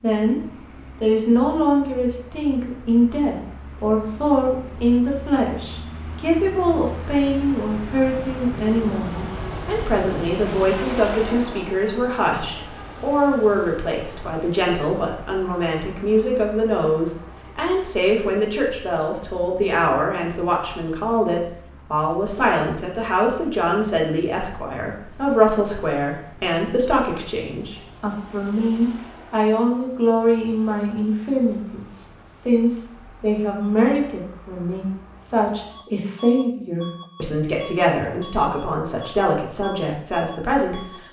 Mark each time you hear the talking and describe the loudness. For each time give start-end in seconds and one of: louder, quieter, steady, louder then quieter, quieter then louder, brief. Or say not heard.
0.0-0.4 brief
1.0-41.0 steady.